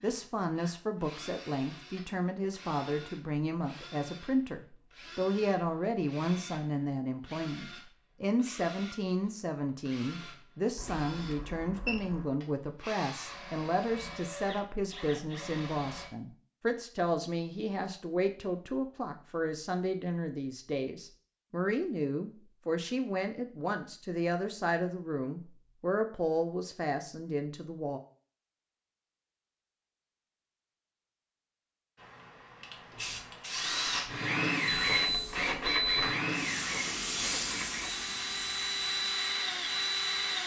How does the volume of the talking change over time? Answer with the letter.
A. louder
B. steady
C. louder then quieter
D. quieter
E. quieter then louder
B.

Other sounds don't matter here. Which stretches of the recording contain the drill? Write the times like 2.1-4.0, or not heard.
0.0-16.1, 33.0-40.4.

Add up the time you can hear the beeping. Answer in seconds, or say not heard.
3 s.